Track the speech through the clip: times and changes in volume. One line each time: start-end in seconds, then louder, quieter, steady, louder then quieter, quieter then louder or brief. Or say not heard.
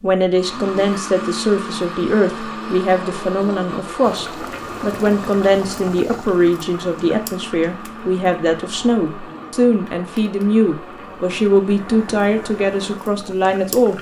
0.0-13.9 steady.